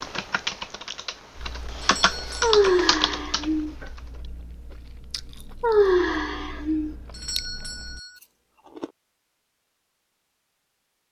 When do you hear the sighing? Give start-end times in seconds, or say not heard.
2.4-3.8, 5.6-7.0.